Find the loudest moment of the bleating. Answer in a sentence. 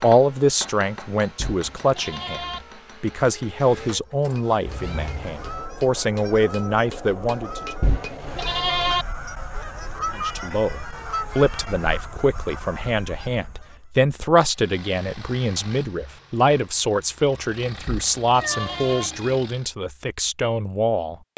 The loudest moment of the bleating is at 9 seconds.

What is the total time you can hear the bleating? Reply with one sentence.
You can hear the bleating for 4 seconds altogether.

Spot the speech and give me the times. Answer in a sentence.
You can hear the speech from 0.0 to 7.6 s and from 10.1 to 21.3 s.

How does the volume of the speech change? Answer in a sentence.
The loudness of the speech stays about the same.